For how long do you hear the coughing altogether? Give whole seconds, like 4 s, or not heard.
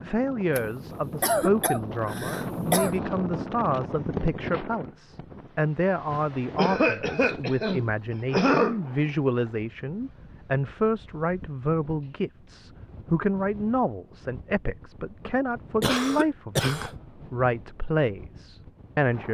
6 s.